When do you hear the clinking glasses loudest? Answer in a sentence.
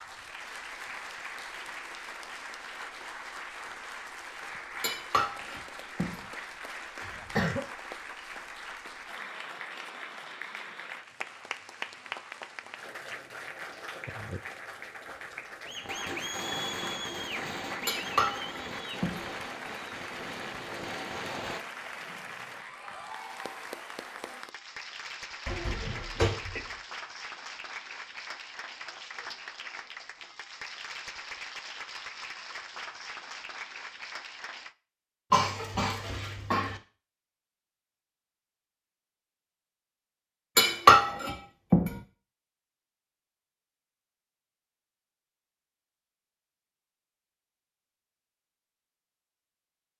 The volume of the clinking glasses peaks at 41 seconds.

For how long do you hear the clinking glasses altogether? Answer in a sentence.
The clinking glasses can be heard for 4 seconds in total.